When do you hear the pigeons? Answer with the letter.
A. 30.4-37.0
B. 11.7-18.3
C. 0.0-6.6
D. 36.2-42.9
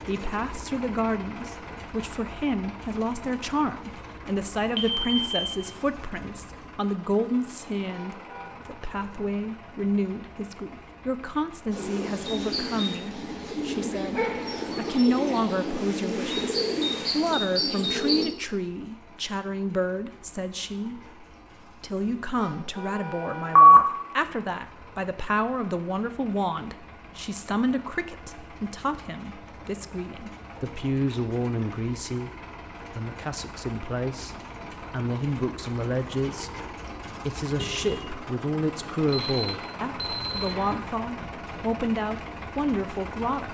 B.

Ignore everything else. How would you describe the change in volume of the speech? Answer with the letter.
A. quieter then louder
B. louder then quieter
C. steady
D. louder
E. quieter
C.